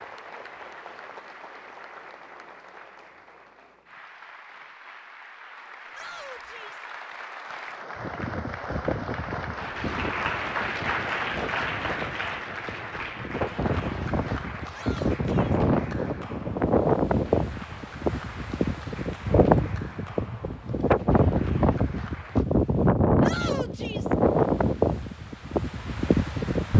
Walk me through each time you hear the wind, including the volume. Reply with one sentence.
The wind can be heard from 8.0 to 26.7 s, getting louder.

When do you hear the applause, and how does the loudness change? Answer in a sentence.
The applause can be heard from 0.0 to 22.4 s, getting louder then quieter.